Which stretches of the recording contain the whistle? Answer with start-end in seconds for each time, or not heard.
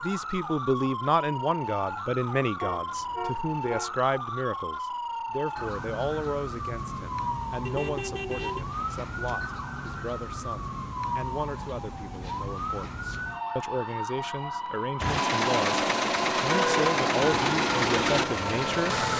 not heard.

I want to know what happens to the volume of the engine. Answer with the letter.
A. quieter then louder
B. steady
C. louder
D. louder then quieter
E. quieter
B.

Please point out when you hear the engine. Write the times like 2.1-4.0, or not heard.
14.9-19.1.